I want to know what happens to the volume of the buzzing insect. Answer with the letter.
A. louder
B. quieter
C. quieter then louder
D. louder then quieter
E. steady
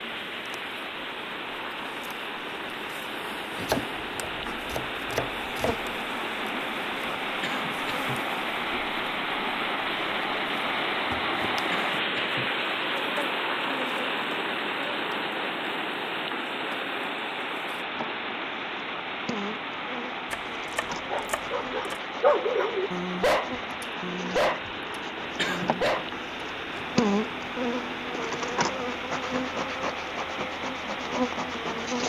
A.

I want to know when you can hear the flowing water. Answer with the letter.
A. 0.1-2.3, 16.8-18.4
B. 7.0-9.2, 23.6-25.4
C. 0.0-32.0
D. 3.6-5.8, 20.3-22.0
C.